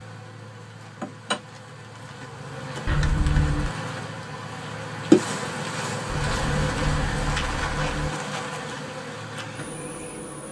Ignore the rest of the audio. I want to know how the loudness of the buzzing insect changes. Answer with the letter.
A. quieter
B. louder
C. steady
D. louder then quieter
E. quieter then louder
D.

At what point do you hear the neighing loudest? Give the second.
3 s.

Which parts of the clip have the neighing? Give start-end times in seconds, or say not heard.
2.9-3.7, 6.0-8.1.